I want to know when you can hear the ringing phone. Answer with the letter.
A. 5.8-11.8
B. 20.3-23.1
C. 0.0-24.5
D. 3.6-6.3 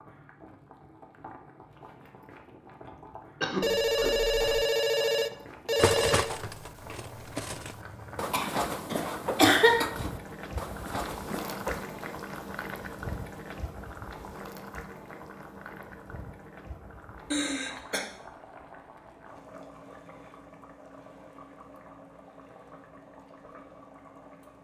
D.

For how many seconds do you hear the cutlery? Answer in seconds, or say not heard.
6 s.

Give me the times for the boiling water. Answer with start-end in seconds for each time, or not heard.
0.0-24.5.